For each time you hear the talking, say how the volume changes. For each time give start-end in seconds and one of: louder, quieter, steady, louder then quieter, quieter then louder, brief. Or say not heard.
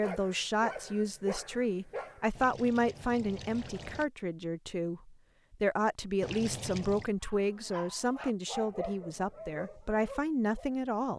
0.0-11.1 steady.